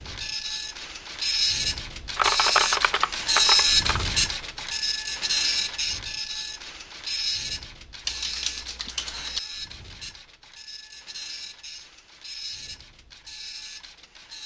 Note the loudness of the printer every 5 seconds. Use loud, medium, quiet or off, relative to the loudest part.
loud, medium, quiet.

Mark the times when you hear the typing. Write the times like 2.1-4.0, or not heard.
2.1-4.0, 8.1-9.4.